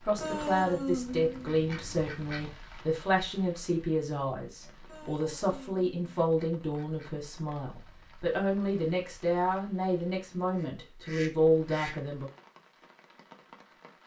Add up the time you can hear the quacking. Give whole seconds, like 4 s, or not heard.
6 s.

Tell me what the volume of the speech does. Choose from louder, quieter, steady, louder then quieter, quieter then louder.
steady.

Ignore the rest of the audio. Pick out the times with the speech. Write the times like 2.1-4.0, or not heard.
0.0-12.3.